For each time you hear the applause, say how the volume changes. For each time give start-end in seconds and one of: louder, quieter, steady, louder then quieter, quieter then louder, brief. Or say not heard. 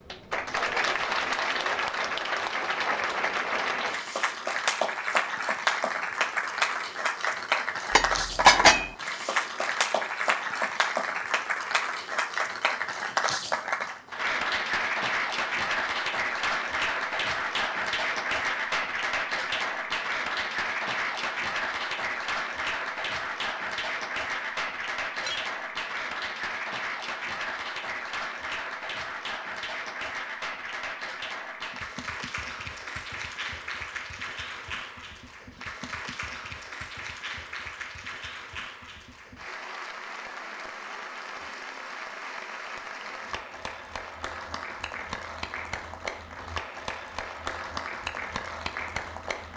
0.1-49.5 quieter.